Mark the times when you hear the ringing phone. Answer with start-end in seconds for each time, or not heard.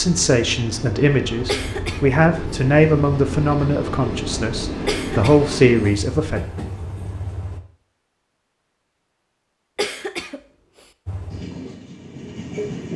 not heard.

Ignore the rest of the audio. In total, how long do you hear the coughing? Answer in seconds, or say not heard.
2 s.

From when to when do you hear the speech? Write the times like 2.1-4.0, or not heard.
0.0-6.4.